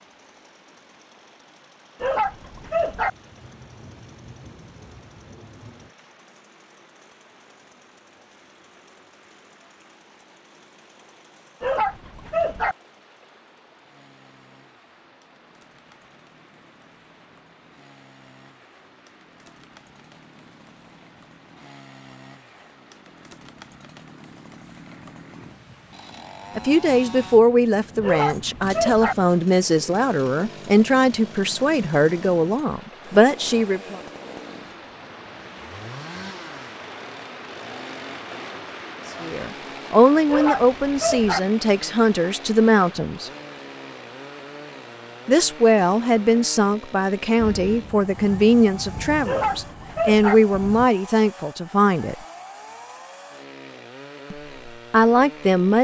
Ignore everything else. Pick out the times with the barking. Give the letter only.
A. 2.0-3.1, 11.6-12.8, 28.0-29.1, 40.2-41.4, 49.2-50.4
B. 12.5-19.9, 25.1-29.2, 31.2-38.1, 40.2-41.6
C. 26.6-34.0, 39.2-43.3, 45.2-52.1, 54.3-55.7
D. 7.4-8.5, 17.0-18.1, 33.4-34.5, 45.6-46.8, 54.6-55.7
A.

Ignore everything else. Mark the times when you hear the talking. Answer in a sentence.
You can hear the talking from 26.6 to 34.0 s, from 39.2 to 43.3 s, from 45.2 to 52.1 s and from 54.3 to 55.7 s.